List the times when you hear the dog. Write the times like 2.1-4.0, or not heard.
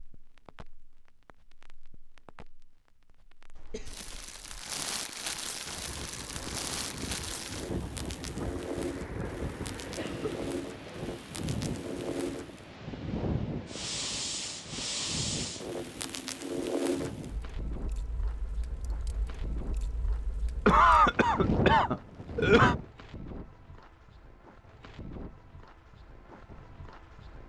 not heard.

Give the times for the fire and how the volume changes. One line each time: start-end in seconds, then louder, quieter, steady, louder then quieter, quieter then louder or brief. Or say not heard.
0.0-22.9 louder.